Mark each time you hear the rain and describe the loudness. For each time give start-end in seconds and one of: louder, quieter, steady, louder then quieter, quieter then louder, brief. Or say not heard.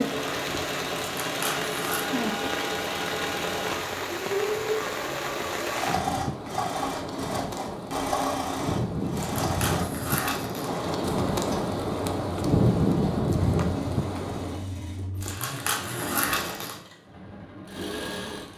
0.0-14.7 louder.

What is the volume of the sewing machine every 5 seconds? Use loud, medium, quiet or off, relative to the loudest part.
loud, loud, medium, medium.